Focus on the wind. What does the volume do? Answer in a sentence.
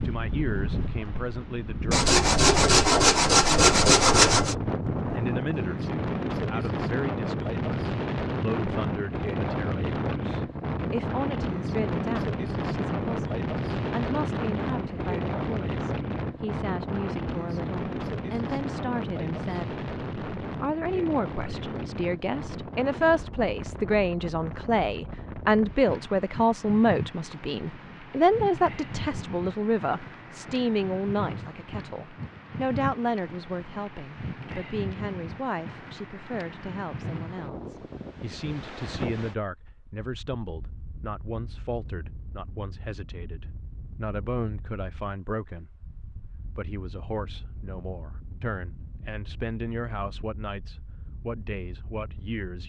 The loudness of the wind goes down.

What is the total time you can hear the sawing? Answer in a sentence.
You can hear the sawing for 3 seconds altogether.